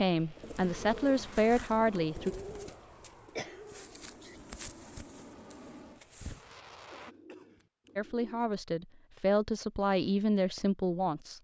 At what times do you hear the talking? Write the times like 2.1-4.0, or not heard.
0.0-2.4, 8.0-11.3.